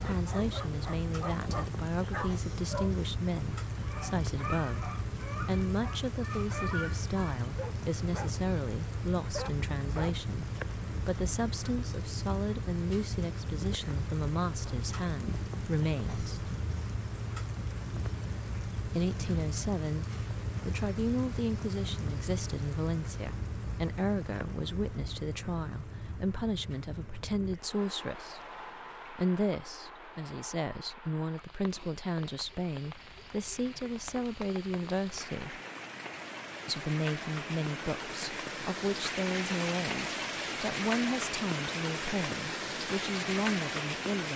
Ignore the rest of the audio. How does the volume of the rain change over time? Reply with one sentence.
The loudness of the rain goes down, then up.